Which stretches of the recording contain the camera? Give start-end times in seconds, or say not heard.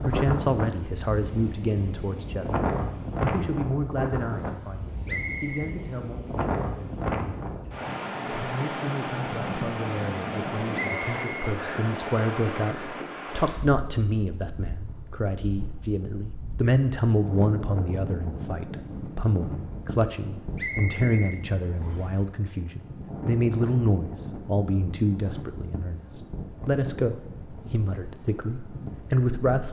not heard.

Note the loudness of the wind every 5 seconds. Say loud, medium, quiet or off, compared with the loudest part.
loud, loud, loud, medium, medium, medium.